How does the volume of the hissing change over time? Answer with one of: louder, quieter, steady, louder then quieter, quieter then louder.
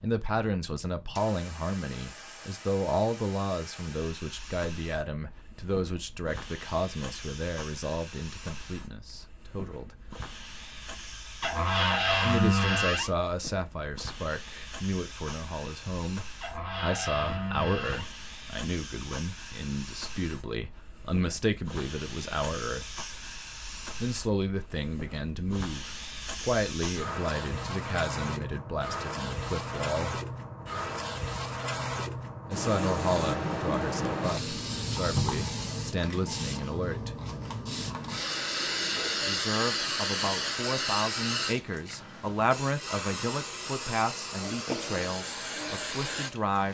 louder.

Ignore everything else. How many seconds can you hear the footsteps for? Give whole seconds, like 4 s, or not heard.
not heard.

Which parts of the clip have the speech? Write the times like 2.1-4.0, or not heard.
0.0-9.9, 12.2-23.0, 24.0-30.2, 32.5-37.1, 39.2-46.6.